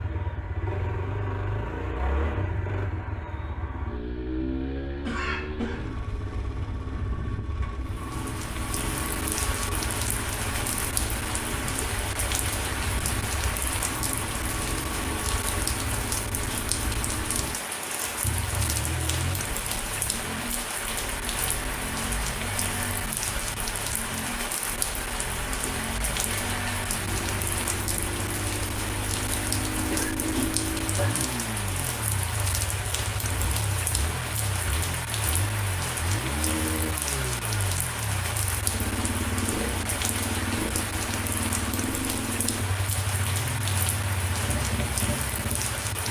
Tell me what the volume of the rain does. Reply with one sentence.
The volume of the rain stays about the same.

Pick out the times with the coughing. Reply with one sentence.
You can hear the coughing from 5.0 to 6.0 s and from 29.9 to 31.2 s.